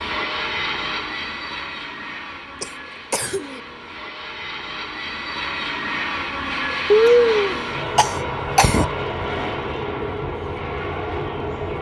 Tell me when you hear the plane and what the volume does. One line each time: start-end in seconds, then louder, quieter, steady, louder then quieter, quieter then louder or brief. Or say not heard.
0.0-11.7 quieter then louder.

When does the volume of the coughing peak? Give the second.
7 s.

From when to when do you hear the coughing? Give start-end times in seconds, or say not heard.
2.6-3.6, 6.9-8.8.